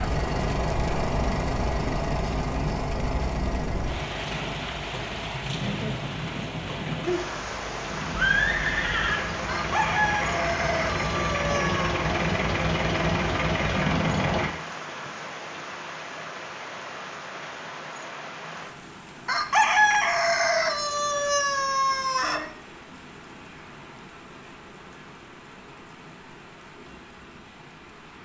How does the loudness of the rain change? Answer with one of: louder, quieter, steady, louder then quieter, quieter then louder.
quieter.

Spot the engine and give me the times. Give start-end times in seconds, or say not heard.
0.0-14.5.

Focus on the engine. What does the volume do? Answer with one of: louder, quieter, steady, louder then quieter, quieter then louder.
quieter then louder.